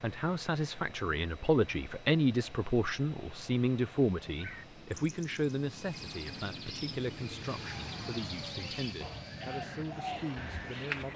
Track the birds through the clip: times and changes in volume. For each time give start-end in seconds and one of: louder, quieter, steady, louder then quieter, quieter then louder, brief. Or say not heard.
4.4-11.1 louder.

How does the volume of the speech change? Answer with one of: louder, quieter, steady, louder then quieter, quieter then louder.
quieter.